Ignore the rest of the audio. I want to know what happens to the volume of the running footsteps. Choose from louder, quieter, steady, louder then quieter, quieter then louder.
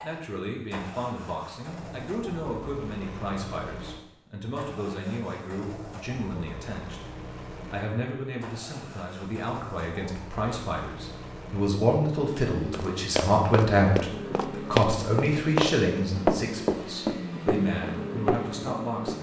louder then quieter.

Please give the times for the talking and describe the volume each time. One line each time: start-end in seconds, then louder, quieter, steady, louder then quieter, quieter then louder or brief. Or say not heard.
0.0-7.0 steady
7.7-19.1 louder then quieter.